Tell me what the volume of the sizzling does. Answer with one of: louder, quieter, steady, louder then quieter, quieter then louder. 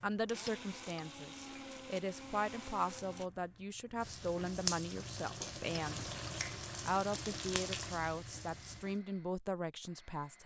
louder.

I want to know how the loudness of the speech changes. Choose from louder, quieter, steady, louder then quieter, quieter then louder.
steady.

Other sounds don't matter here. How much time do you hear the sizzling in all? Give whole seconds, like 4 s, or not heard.
9 s.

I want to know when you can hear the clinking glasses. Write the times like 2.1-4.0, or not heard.
0.5-1.1, 5.8-6.3.